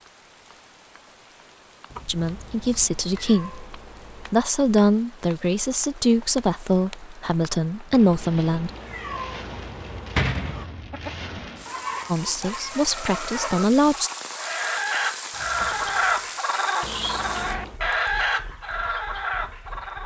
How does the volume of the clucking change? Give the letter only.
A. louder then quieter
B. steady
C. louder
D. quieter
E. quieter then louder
C.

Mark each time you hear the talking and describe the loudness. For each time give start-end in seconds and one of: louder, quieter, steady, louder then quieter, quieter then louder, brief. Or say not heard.
2.0-8.7 steady
12.1-14.1 brief.